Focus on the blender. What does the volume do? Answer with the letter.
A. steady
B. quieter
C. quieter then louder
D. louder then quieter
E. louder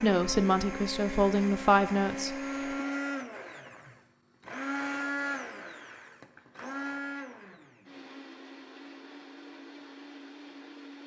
B.